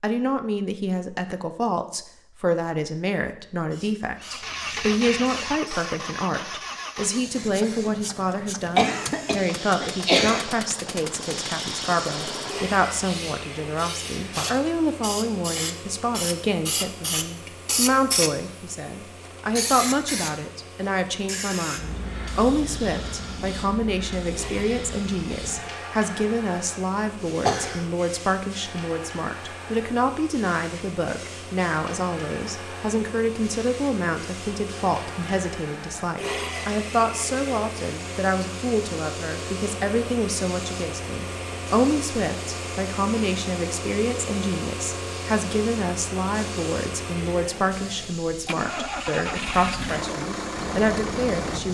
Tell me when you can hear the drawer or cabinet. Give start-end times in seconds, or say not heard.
not heard.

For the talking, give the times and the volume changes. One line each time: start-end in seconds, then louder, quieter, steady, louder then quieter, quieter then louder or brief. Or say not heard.
0.0-51.6 steady.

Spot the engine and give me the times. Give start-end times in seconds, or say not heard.
4.2-51.6.